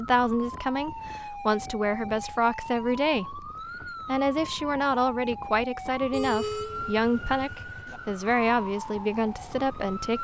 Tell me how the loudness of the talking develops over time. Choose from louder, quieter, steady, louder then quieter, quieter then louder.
steady.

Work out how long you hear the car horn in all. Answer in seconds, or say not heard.
2 s.